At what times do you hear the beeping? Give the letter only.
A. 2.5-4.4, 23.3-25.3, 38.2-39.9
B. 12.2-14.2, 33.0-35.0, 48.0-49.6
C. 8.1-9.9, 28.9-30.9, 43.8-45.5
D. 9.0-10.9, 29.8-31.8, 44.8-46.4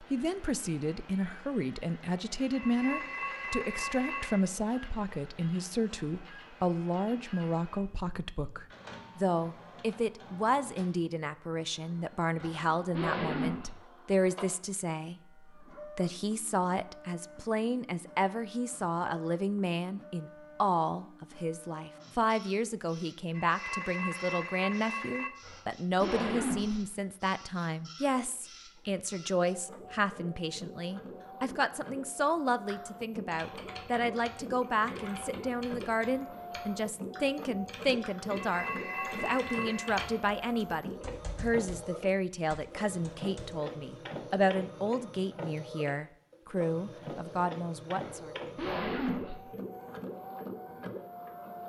A.